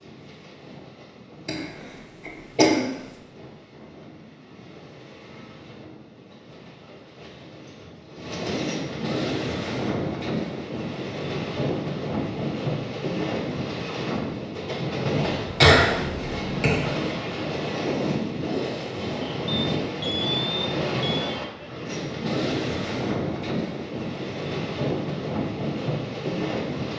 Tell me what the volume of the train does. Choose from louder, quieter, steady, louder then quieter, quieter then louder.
louder.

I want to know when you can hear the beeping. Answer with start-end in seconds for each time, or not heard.
19.4-21.4.